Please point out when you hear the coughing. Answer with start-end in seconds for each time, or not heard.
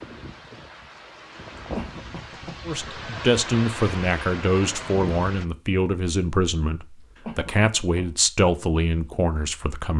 1.8-2.6, 7.2-8.1.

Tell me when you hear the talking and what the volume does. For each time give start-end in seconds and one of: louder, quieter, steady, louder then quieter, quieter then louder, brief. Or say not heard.
2.6-9.9 steady.